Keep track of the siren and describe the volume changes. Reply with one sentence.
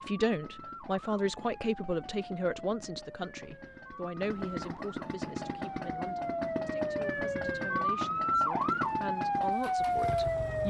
The loudness of the siren goes up.